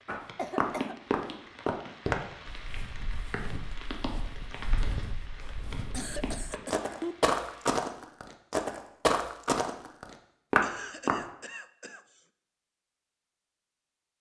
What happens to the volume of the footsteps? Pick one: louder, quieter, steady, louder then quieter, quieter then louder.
quieter then louder.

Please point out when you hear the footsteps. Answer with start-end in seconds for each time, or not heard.
0.1-11.2.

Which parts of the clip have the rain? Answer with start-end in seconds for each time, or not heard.
0.0-7.8.